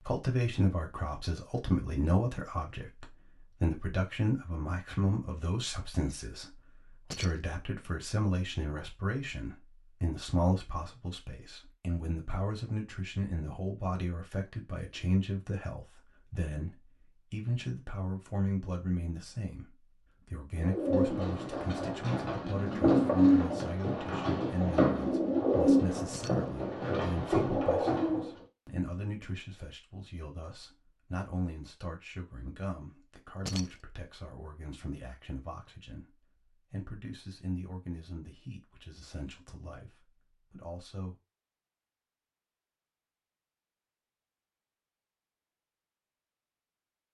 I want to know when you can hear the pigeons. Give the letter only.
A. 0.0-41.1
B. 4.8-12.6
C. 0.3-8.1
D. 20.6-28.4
D.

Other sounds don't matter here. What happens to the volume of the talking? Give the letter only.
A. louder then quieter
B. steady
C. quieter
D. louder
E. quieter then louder
C.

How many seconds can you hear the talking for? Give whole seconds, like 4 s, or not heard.
41 s.